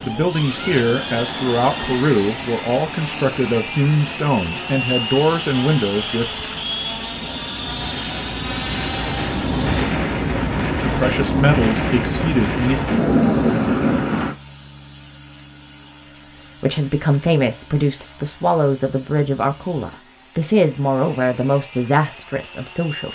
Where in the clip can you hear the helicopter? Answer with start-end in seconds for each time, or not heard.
0.0-23.0.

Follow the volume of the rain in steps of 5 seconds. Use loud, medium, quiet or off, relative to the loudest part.
quiet, medium, loud, off, off.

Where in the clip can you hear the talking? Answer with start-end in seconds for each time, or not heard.
0.0-6.5, 10.8-12.8, 16.1-23.0.